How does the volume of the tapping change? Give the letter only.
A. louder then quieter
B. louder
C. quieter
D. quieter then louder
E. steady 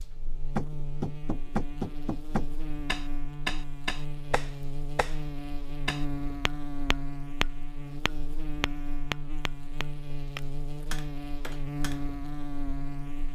C.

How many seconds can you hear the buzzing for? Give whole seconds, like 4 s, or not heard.
13 s.